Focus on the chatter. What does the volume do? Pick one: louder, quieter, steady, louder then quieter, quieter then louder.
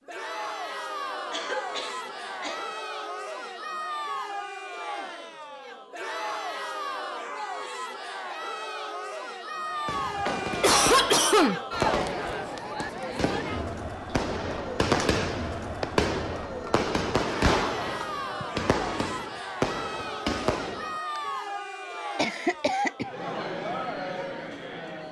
steady.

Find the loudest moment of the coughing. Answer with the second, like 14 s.
11 s.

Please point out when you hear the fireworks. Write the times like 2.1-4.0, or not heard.
9.8-21.2.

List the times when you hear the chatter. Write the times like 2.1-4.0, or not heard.
0.1-25.0.